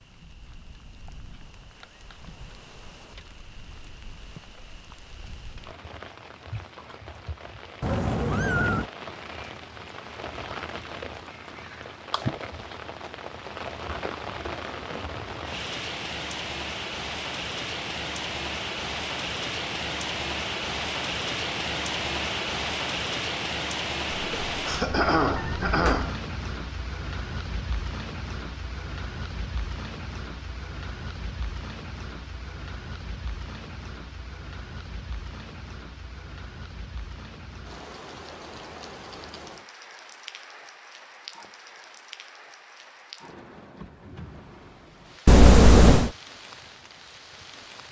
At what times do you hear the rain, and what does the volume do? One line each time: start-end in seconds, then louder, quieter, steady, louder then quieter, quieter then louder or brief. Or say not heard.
0.0-47.8 louder then quieter.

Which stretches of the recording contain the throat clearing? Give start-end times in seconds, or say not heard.
24.6-26.1.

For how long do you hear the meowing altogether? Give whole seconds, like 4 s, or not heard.
4 s.